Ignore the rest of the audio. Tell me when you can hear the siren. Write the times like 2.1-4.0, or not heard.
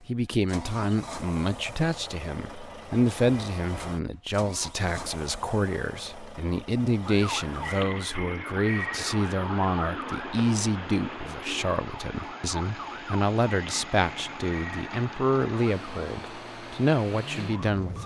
7.0-18.0.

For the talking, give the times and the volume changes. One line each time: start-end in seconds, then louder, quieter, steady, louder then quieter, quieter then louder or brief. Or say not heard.
0.1-18.0 steady.